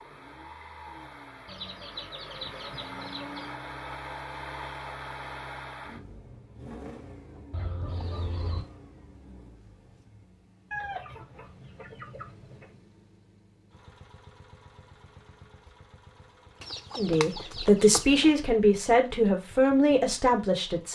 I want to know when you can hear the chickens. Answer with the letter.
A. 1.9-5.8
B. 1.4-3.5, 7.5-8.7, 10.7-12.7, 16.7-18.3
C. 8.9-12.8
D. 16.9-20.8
B.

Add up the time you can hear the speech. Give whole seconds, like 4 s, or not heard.
4 s.